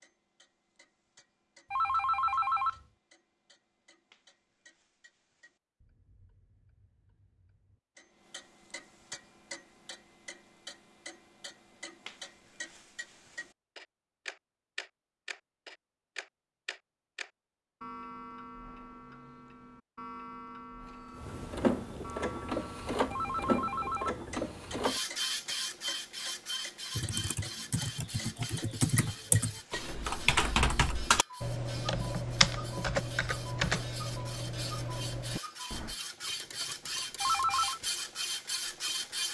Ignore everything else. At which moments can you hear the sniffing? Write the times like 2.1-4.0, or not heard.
not heard.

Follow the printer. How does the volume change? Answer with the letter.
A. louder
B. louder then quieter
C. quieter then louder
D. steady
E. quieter
C.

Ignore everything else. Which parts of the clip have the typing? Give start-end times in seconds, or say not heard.
26.9-36.0.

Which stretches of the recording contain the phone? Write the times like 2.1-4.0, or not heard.
1.7-2.8, 23.1-24.2, 37.2-37.8.